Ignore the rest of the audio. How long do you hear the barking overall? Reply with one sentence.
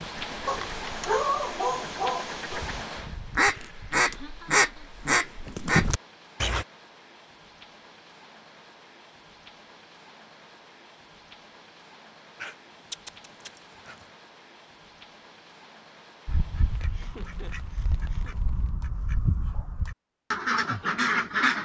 You can hear the barking for 4 seconds altogether.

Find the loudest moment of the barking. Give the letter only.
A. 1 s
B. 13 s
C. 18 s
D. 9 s
A.